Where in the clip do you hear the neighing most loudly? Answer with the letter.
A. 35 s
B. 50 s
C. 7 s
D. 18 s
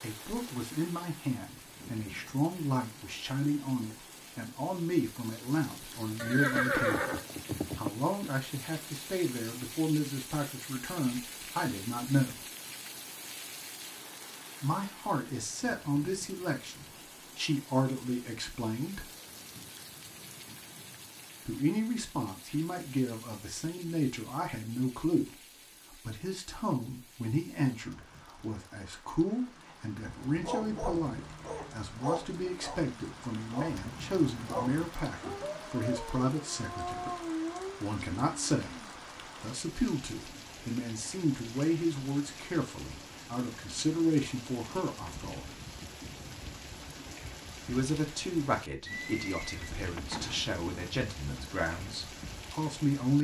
C.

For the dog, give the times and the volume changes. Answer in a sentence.
The dog can be heard from 29.9 to 37.8 s, at a steady volume.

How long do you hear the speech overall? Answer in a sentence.
The speech can be heard for 46 seconds in total.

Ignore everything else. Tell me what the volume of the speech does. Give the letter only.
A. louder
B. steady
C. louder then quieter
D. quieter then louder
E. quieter
B.